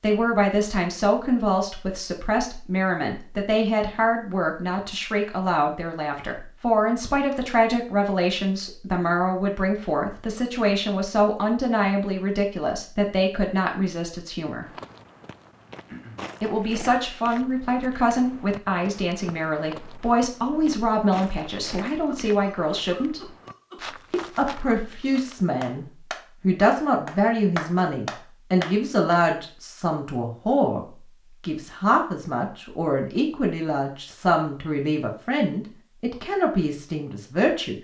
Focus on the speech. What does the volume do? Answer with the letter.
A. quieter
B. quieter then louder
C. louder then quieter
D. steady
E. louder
D.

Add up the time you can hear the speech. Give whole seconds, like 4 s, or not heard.
35 s.